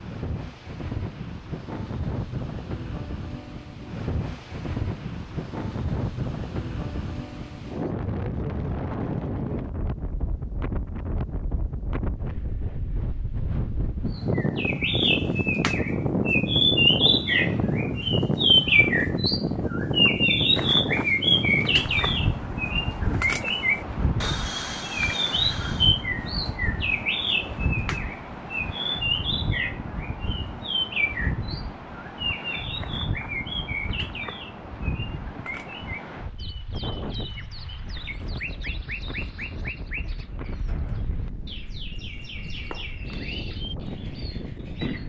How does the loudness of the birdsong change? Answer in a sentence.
The volume of the birdsong goes down.